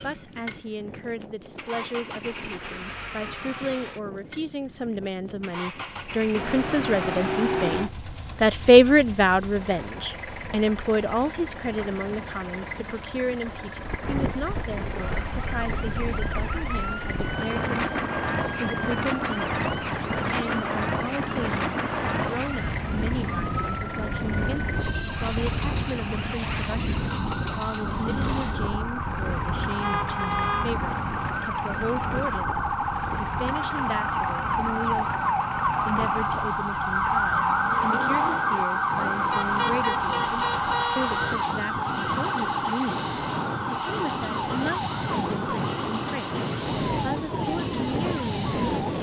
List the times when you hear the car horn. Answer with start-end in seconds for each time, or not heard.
6.3-7.9, 29.8-30.7, 39.3-41.4.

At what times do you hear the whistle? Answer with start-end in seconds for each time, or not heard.
not heard.